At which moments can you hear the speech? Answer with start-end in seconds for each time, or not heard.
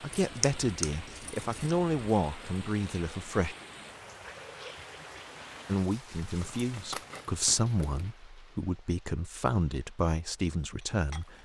0.0-3.5, 5.7-11.4.